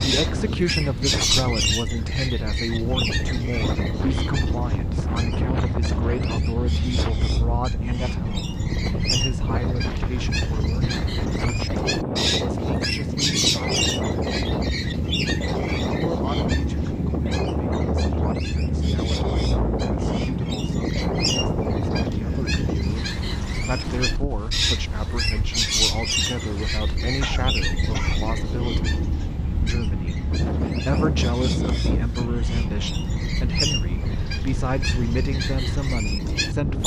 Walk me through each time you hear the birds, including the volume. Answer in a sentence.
The birds can be heard from 0.0 to 36.8 s, at a steady volume.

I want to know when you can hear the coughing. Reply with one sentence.
You can hear the coughing from 27.2 to 28.2 s.